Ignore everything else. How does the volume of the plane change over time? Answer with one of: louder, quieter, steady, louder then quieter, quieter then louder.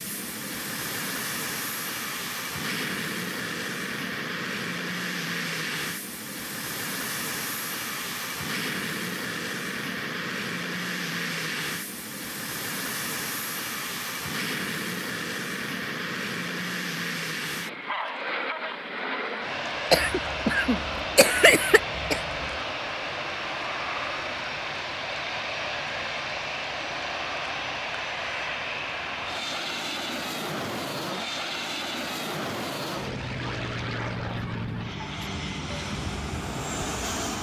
steady.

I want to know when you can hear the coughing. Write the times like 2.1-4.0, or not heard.
19.9-22.6.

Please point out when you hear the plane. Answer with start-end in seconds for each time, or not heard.
0.0-37.3.